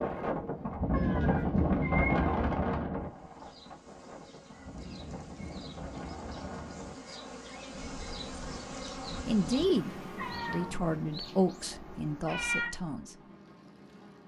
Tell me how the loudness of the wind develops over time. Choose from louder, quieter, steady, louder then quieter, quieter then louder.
quieter.